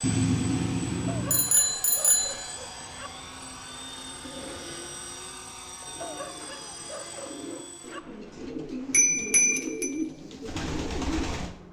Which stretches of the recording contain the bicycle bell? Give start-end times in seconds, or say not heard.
0.0-2.4, 8.9-9.9.